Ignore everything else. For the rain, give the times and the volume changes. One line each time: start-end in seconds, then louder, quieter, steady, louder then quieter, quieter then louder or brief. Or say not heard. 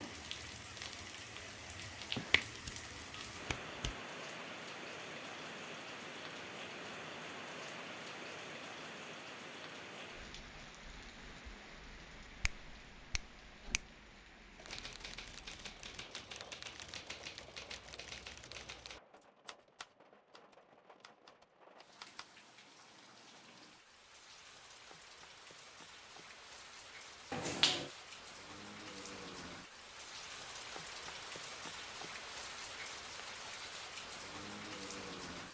0.0-35.4 quieter then louder.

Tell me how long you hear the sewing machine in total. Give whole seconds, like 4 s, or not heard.
not heard.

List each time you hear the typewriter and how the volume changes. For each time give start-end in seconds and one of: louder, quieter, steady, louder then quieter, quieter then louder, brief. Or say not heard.
14.6-22.3 quieter.